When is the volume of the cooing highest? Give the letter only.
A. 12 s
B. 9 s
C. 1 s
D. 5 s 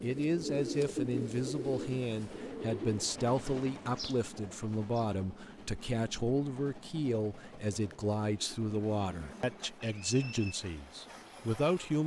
C.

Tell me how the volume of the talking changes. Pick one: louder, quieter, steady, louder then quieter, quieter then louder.
steady.